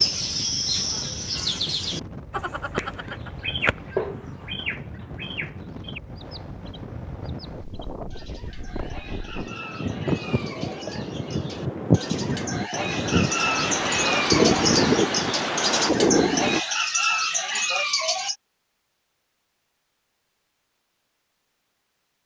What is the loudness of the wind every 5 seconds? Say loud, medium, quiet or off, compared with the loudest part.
quiet, quiet, loud, loud, off.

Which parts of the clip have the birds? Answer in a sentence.
The birds can be heard from 0.0 to 18.4 s.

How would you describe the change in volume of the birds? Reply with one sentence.
The volume of the birds goes down, then up.